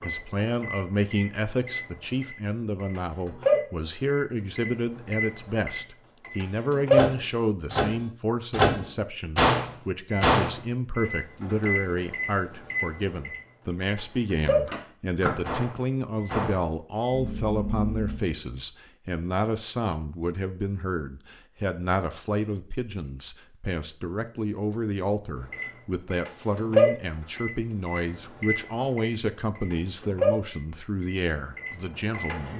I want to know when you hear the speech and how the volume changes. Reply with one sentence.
You can hear the speech from 0.0 to 32.5 s, at a steady volume.